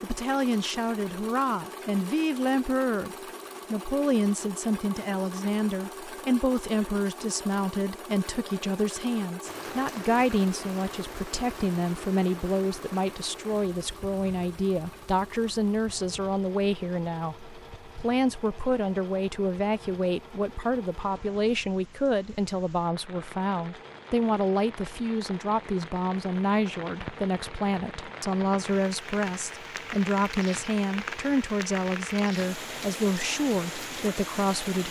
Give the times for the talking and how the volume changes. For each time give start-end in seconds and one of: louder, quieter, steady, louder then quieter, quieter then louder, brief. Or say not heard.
0.0-34.8 steady.